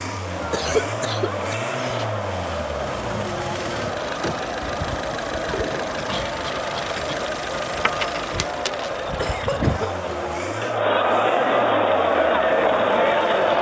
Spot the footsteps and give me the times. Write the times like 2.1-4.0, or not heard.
not heard.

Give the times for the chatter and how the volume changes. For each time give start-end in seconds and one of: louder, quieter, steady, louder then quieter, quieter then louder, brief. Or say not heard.
0.0-13.5 louder.